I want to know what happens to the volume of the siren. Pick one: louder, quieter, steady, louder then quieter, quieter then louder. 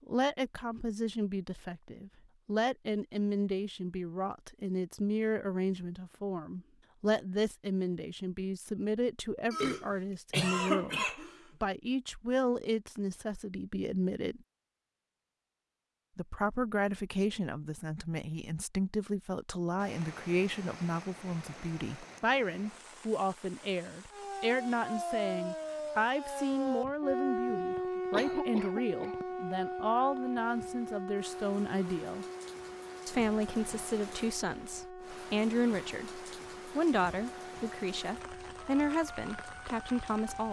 quieter.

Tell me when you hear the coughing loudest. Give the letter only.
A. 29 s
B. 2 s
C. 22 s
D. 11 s
D.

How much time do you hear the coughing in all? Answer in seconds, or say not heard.
3 s.